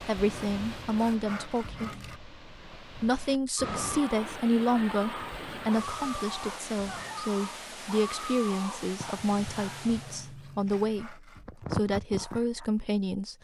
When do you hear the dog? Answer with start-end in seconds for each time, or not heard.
3.5-12.7.